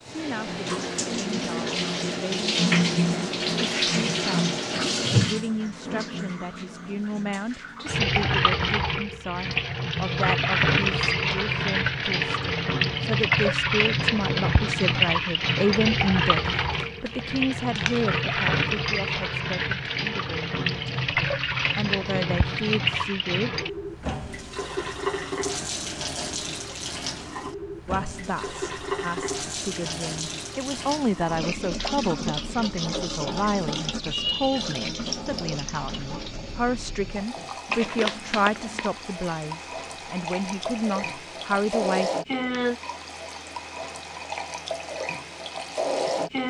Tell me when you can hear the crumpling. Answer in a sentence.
The crumpling can be heard from 16.6 to 18.2 s and from 37.6 to 38.9 s.